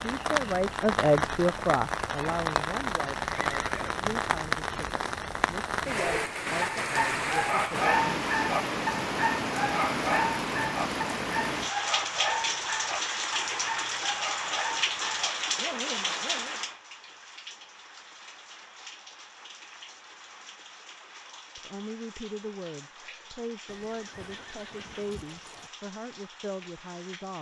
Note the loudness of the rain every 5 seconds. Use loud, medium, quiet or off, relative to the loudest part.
loud, loud, loud, medium, quiet, quiet.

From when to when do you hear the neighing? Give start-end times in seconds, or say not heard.
3.5-4.0, 23.6-25.7.